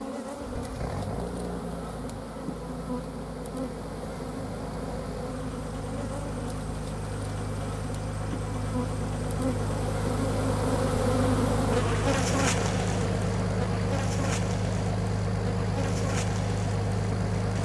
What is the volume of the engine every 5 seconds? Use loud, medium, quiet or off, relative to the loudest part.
medium, medium, loud, loud.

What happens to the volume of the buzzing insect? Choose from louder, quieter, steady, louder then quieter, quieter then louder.
louder then quieter.